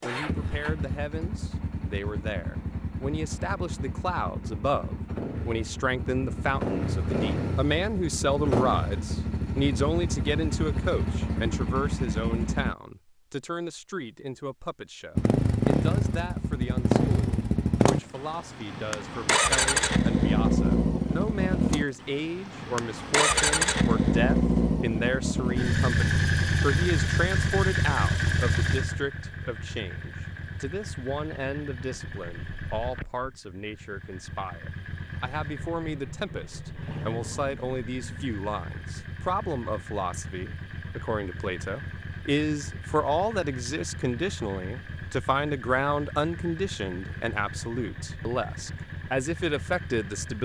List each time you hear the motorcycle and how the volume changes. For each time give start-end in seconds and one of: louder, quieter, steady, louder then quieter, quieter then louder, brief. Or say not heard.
0.0-12.8 louder
15.2-50.3 quieter.